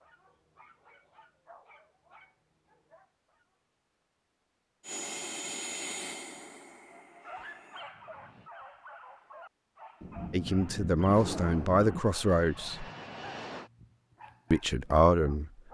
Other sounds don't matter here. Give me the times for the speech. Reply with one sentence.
The speech can be heard from 10.3 to 12.8 s and from 14.5 to 15.5 s.